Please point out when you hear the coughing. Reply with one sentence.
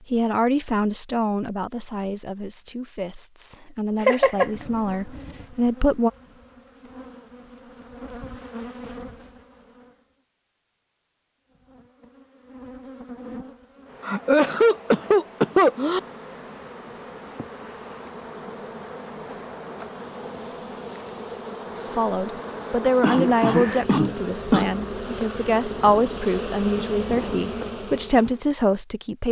You can hear the coughing from 4.0 to 4.5 s, from 14.0 to 16.0 s and from 23.0 to 24.6 s.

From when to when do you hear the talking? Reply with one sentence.
You can hear the talking from 0.1 to 6.1 s and from 21.9 to 29.2 s.